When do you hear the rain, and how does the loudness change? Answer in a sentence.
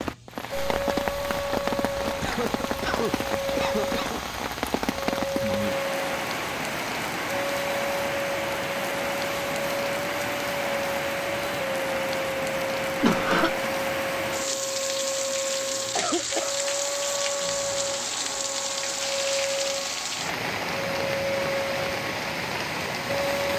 You can hear the rain from 0.0 to 23.5 s, at a steady volume.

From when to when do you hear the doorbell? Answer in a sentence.
You can't hear the doorbell here.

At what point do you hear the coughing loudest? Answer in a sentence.
The volume of the coughing peaks at 13 seconds.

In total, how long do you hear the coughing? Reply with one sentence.
The coughing can be heard for 3 seconds in total.